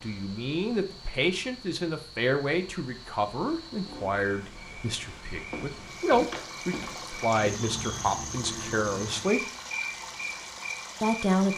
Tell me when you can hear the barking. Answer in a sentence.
The barking can't be heard in this clip.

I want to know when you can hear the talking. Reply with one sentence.
The talking can be heard from 0.0 to 9.4 s and from 11.0 to 11.5 s.